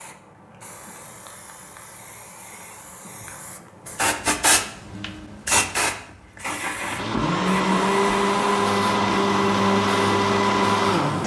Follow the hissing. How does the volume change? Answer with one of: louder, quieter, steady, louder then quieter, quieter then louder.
louder then quieter.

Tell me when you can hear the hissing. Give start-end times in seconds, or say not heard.
0.0-11.2.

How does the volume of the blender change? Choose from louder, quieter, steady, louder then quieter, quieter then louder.
steady.